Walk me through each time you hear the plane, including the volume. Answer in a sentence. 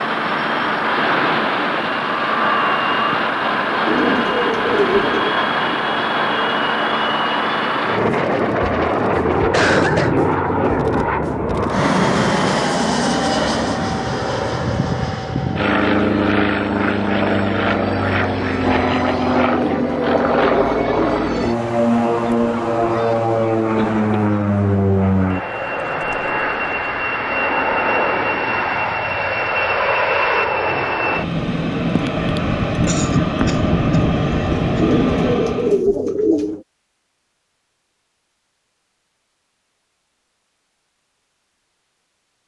The plane can be heard from 0.0 to 35.8 s, at a steady volume.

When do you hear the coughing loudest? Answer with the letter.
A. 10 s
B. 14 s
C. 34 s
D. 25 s
A.